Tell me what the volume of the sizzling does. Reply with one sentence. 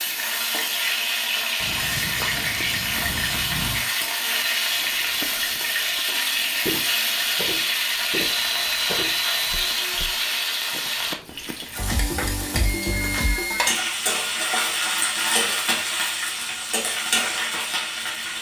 The loudness of the sizzling stays about the same.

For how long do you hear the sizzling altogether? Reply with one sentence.
You can hear the sizzling for 18 seconds altogether.